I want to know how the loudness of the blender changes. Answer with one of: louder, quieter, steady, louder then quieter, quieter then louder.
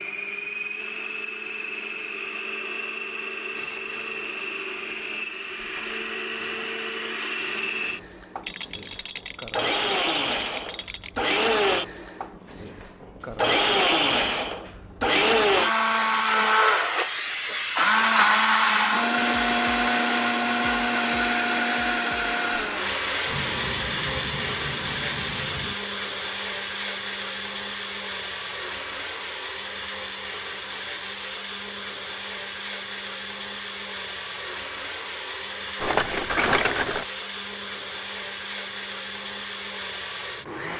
louder then quieter.